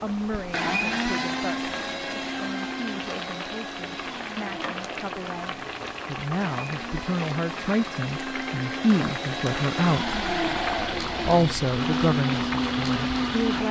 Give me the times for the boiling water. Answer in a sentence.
You can hear the boiling water from 0.0 to 13.6 s.